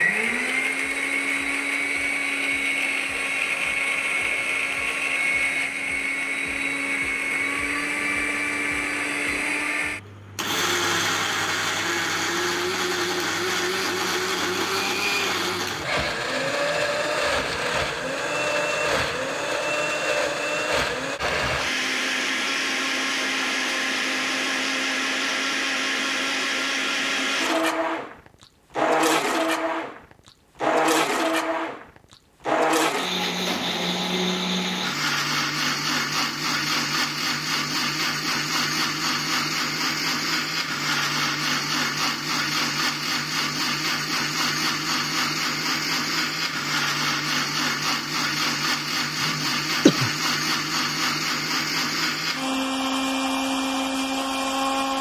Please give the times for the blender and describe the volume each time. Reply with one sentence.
The blender can be heard from 0.0 to 54.9 s, at a steady volume.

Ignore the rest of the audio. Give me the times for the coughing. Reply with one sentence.
The coughing can be heard from 49.2 to 50.1 s.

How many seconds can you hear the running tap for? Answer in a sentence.
You can't hear the running tap here.